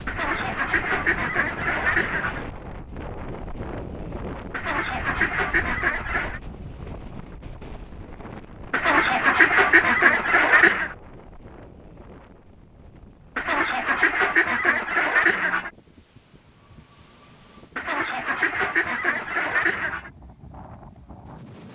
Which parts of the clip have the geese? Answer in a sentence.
You can hear the geese from 0.1 to 2.4 s, from 4.5 to 6.4 s, from 8.7 to 10.9 s, from 13.3 to 15.7 s and from 17.8 to 20.1 s.